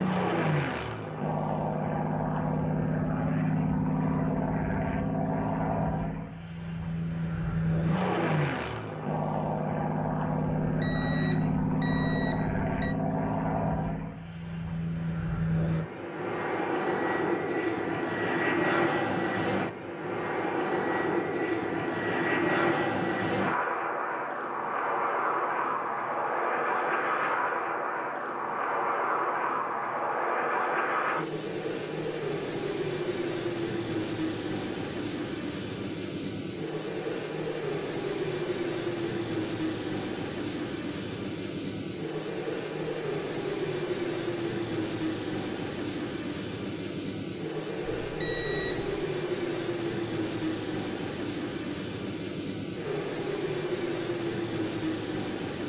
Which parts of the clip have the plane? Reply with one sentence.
The plane can be heard from 0.0 to 55.6 s.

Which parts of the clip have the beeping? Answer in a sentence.
You can hear the beeping from 10.4 to 12.9 s and from 48.0 to 48.9 s.